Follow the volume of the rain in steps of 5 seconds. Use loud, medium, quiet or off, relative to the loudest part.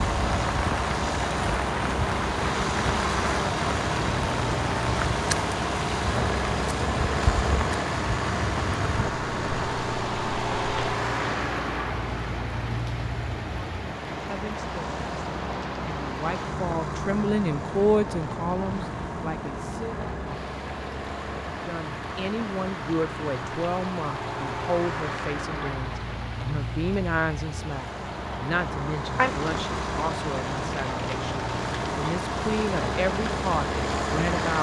loud, loud, medium, medium, medium, medium, medium.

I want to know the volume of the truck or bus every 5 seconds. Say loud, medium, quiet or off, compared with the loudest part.
loud, loud, loud, medium, medium, medium, loud.